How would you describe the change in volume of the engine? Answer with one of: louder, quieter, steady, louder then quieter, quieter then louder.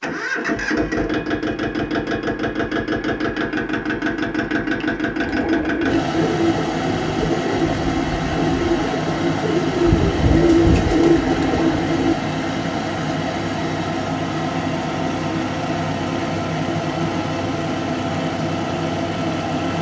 steady.